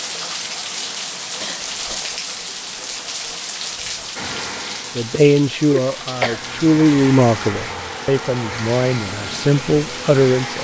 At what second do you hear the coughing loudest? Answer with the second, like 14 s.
6 s.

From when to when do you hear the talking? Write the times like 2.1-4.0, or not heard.
5.0-10.5.